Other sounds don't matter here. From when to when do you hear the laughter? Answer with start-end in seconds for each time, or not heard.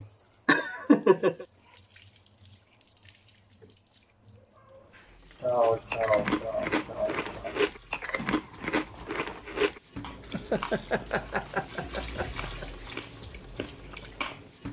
0.5-1.4, 5.4-7.5, 10.3-12.7.